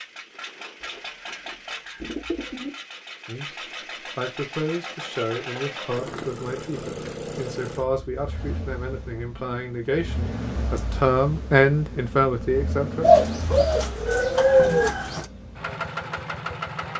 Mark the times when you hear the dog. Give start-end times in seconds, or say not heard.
not heard.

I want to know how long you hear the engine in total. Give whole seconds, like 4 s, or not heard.
17 s.